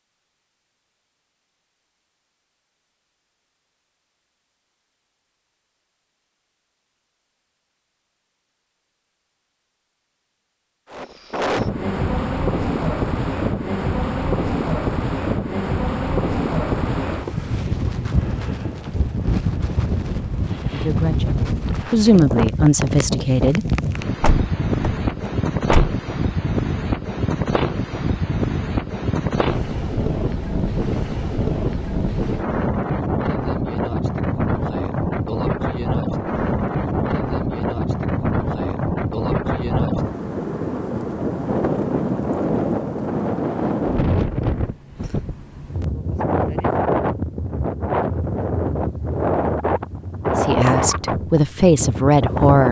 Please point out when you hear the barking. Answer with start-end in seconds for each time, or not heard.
not heard.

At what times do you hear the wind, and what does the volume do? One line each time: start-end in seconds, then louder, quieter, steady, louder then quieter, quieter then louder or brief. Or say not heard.
10.9-52.6 steady.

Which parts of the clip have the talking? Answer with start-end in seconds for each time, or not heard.
20.7-23.7, 50.4-52.6.